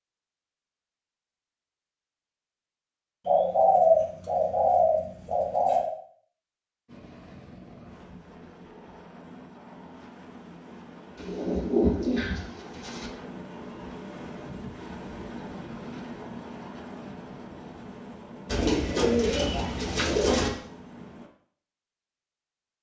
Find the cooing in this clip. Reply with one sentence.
You can hear the cooing from 3.2 to 5.9 s, from 11.2 to 13.1 s and from 18.5 to 20.5 s.